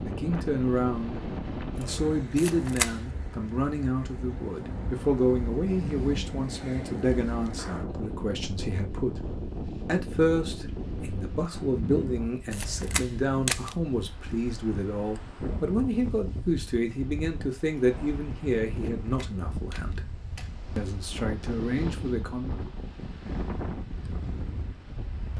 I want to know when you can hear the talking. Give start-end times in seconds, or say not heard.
0.0-9.2, 9.8-20.0, 20.8-22.6.